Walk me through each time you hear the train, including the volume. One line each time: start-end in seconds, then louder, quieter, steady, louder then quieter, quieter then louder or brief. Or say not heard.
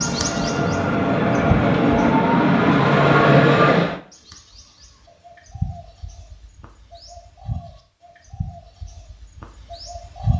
0.0-4.0 louder.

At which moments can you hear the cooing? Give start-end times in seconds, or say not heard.
0.0-2.1, 4.1-10.3.